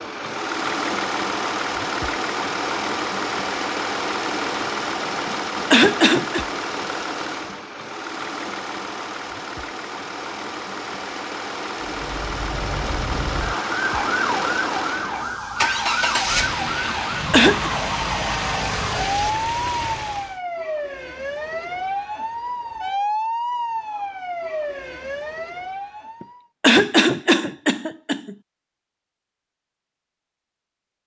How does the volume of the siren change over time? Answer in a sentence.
The loudness of the siren stays about the same.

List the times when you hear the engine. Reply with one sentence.
You can hear the engine from 0.0 to 20.4 s.